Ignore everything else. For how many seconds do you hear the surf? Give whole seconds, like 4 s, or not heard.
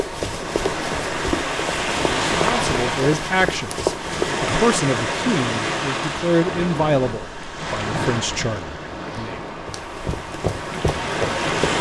12 s.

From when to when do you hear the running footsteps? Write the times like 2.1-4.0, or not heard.
0.0-4.5, 9.7-11.7.